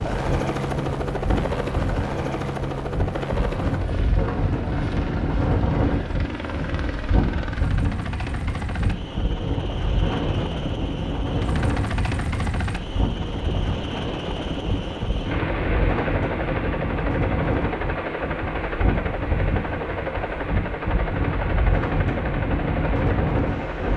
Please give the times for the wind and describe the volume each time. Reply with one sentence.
The wind can be heard from 0.0 to 23.9 s, at a steady volume.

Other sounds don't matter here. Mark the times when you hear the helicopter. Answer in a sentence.
The helicopter can be heard from 0.0 to 23.9 s.